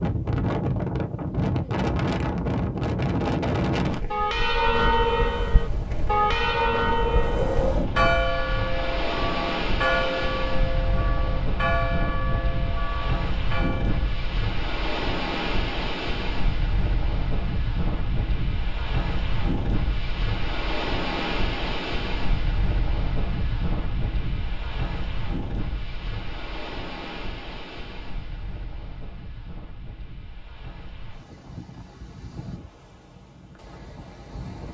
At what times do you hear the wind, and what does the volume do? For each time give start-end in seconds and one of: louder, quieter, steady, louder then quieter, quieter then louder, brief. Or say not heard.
0.0-34.7 quieter.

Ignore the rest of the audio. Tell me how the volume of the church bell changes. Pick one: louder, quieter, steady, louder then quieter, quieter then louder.
quieter.